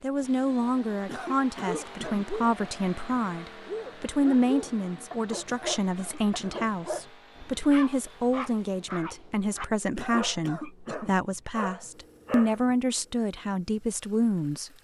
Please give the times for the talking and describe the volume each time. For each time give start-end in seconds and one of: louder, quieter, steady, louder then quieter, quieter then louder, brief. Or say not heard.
0.0-14.7 steady.